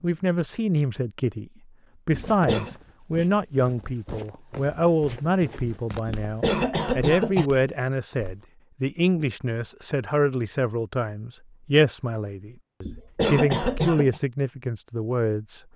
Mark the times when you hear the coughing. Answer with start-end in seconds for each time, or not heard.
2.1-2.7, 6.0-7.5, 12.8-14.2.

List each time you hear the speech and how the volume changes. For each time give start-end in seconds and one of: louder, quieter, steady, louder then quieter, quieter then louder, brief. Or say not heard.
0.0-1.4 brief
2.0-15.6 steady.